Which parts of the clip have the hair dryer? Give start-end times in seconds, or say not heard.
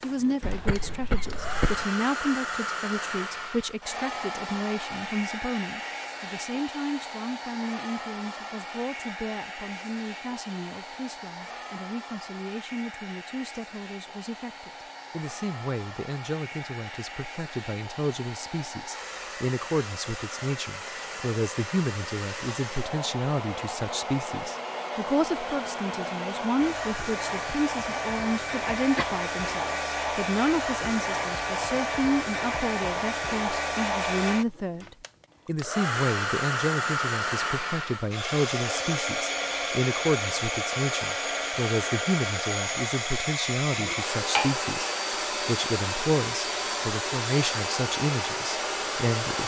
0.0-49.4.